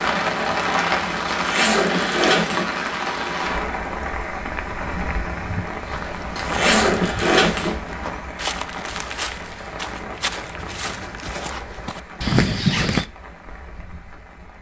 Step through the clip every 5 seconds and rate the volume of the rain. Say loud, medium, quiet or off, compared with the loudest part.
loud, medium, quiet.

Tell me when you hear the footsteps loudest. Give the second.
13 s.